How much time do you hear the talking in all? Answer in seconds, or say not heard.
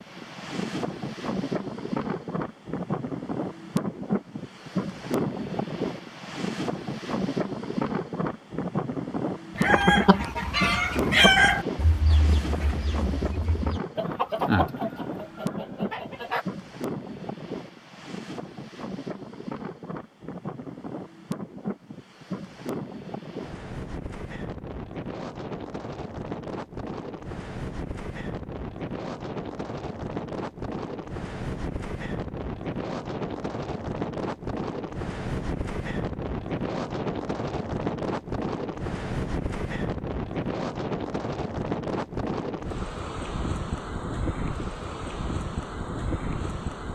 not heard.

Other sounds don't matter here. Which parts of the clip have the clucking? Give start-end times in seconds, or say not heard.
9.6-16.4.